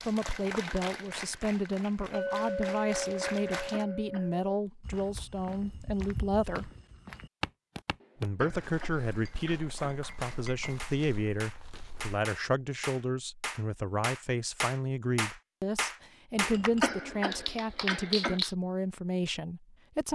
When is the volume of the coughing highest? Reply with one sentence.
The volume of the coughing peaks at 17 seconds.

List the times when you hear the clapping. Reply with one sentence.
The clapping can be heard from 0.0 to 3.9 s and from 9.8 to 18.6 s.